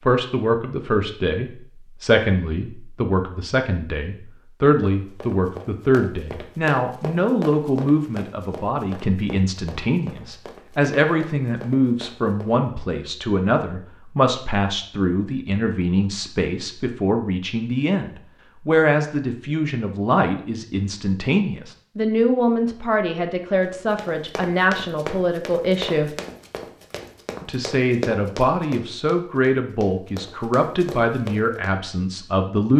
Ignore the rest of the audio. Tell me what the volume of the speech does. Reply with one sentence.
The volume of the speech stays about the same.